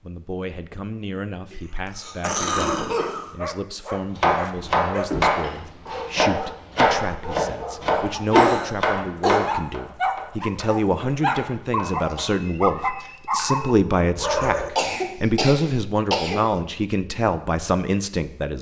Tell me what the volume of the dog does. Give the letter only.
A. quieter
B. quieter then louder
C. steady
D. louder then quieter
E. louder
E.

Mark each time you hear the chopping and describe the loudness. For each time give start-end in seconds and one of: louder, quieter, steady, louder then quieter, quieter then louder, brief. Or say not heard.
4.2-13.6 quieter.